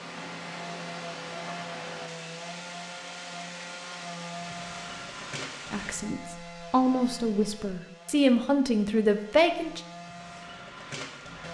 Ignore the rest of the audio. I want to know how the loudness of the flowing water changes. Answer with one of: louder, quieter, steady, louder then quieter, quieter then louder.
steady.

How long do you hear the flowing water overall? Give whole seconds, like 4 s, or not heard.
6 s.